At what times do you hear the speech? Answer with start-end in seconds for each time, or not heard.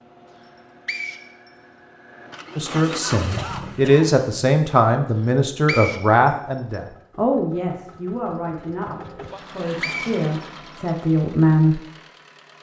2.5-11.8.